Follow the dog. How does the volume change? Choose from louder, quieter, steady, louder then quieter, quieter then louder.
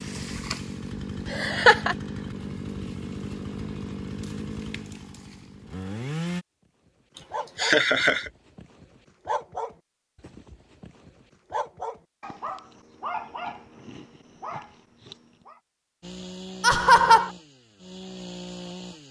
louder then quieter.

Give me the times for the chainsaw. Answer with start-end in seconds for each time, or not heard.
0.0-6.5, 16.0-19.0.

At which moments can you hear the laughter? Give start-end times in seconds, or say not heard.
1.3-1.9, 7.5-8.3, 16.6-17.3.